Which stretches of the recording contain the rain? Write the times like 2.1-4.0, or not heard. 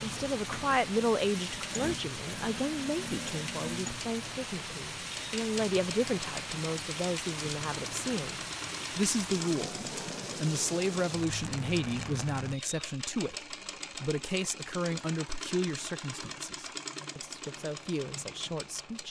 0.0-12.6.